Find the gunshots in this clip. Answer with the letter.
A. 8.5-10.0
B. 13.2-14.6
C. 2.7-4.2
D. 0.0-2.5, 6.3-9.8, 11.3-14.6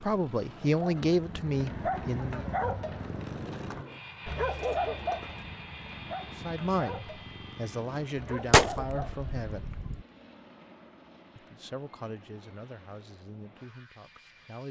A.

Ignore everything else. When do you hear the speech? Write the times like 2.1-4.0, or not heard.
0.0-2.5, 6.3-9.8, 11.3-14.6.